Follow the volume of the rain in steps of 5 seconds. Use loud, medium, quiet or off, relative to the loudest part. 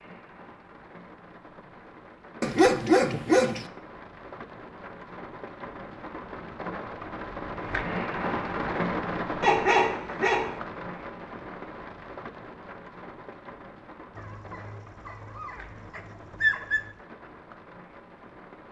quiet, loud, medium, quiet.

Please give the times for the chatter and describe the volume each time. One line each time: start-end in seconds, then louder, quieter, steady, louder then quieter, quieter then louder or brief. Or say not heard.
not heard.